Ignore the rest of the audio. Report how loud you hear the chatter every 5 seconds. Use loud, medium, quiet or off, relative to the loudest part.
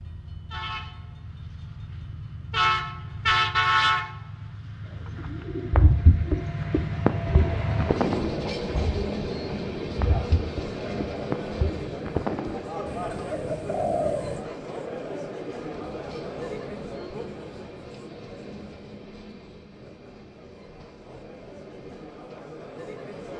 off, loud, loud, loud, medium.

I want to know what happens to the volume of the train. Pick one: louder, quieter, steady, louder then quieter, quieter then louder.
quieter.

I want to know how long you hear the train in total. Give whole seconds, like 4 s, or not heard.
23 s.